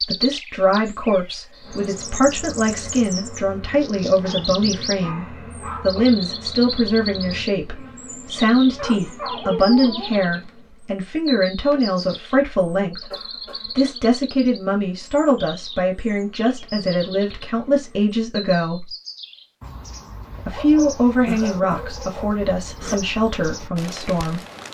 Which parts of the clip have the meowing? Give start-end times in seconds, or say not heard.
not heard.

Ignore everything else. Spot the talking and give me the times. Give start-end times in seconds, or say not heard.
0.1-18.9, 20.4-24.4.